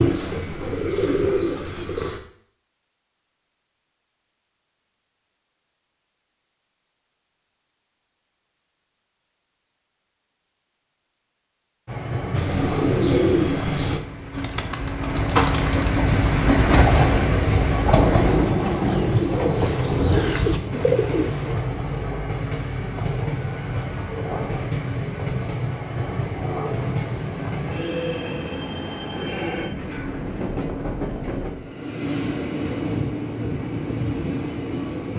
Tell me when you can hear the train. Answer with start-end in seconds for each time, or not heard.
11.8-35.1.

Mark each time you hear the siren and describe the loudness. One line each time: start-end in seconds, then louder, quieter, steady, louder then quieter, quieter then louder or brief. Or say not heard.
not heard.